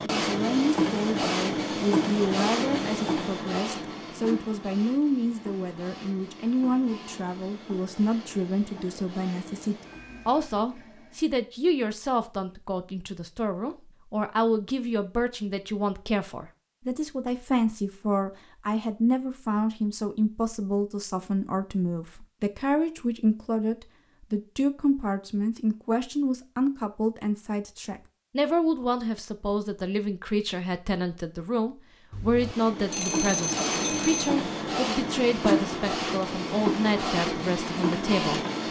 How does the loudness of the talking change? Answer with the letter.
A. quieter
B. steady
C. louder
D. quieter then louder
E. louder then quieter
B.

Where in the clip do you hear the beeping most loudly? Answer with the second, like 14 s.
33 s.